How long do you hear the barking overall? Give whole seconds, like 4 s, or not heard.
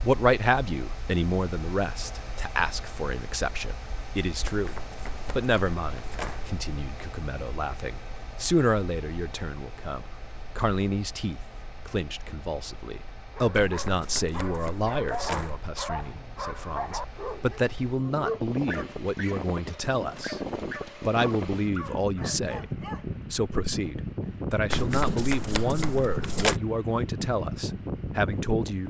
10 s.